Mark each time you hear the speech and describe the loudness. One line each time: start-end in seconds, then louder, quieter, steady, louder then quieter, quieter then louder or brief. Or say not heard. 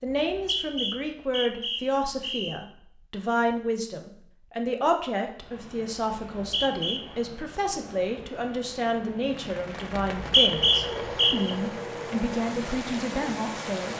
0.0-13.9 steady.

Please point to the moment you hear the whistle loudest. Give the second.
11 s.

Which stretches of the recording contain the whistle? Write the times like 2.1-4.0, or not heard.
0.1-2.6, 6.3-7.0, 10.2-11.5.